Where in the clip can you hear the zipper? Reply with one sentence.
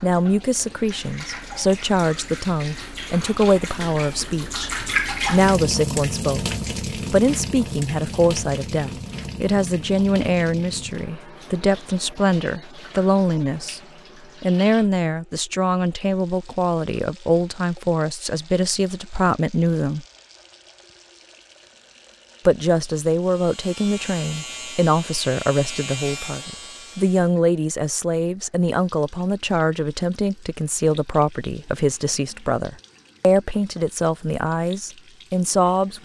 You can't hear the zipper here.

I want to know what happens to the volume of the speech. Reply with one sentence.
The volume of the speech stays about the same.